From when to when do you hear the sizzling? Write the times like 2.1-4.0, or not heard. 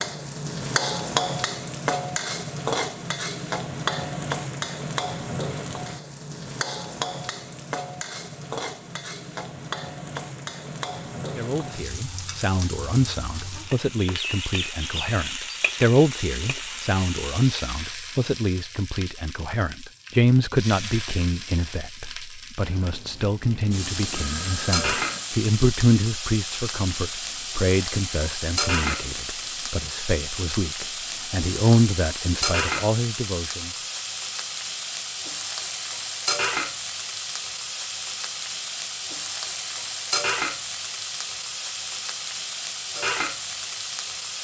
0.0-44.3.